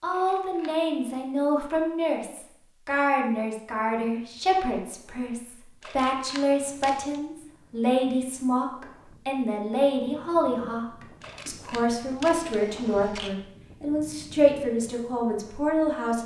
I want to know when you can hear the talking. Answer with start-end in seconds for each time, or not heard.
0.0-10.8, 11.4-16.2.